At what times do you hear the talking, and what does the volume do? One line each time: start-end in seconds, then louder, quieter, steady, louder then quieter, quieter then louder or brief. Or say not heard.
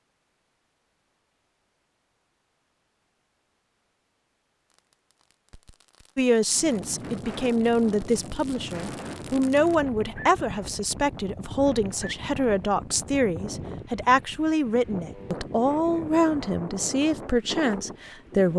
6.2-18.5 steady.